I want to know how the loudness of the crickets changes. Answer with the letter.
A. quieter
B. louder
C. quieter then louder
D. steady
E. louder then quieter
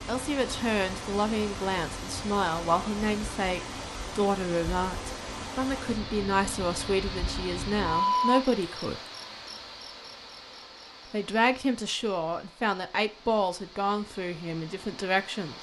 E.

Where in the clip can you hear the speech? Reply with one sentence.
You can hear the speech from 0.1 to 9.0 s and from 11.1 to 15.5 s.